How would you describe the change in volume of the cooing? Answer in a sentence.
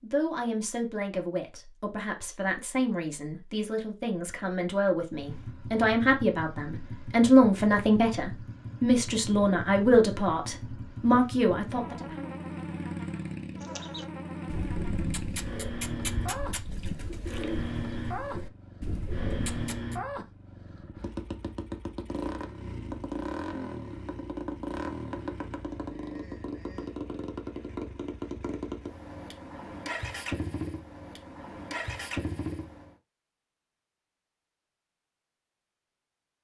The volume of the cooing stays about the same.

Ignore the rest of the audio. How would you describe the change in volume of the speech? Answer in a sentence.
The loudness of the speech goes up.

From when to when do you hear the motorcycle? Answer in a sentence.
The motorcycle can be heard from 5.1 to 33.0 s.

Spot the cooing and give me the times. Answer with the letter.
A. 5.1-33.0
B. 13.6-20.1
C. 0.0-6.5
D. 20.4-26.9
B.